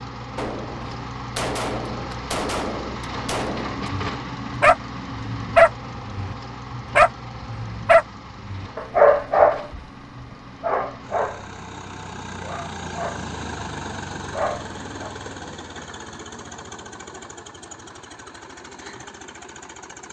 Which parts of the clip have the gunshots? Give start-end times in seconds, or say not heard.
0.3-3.9.